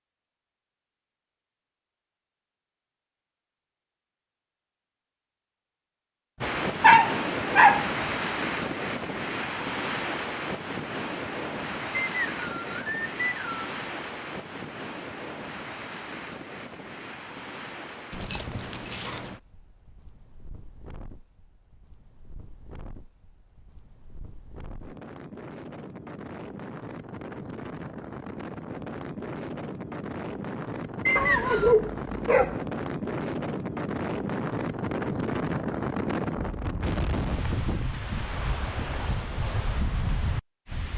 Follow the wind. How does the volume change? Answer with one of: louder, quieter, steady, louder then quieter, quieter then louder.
quieter then louder.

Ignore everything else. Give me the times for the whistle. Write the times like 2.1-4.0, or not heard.
12.0-13.7, 31.1-31.8.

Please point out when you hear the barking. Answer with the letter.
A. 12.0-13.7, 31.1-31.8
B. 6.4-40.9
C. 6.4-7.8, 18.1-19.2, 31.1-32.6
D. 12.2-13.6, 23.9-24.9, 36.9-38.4
C.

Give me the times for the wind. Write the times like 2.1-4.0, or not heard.
6.4-40.9.